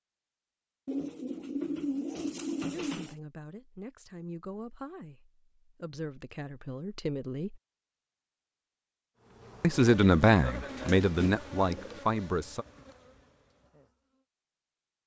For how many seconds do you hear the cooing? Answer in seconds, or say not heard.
4 s.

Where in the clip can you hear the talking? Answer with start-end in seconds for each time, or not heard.
2.7-7.6, 9.6-12.7.